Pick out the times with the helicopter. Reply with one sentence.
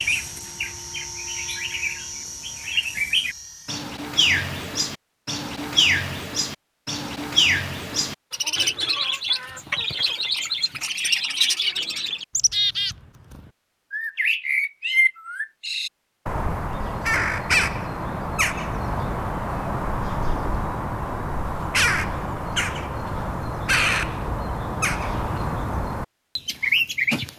You can hear the helicopter from 0.0 to 3.9 s.